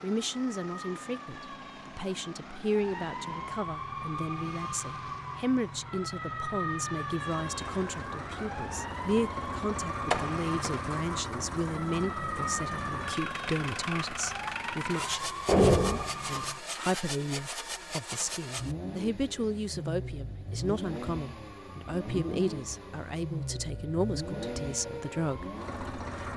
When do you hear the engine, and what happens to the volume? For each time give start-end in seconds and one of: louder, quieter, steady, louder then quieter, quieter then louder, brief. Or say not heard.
0.0-26.3 louder.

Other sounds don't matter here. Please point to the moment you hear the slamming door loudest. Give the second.
16 s.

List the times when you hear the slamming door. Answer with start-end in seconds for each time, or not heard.
10.1-10.8, 15.4-16.1.